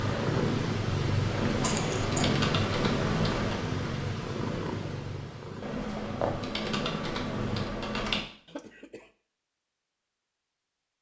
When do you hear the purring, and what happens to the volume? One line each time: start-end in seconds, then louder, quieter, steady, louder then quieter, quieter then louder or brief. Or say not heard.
0.0-7.7 quieter.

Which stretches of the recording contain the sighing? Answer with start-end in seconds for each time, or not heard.
not heard.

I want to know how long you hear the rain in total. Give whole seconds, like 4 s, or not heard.
not heard.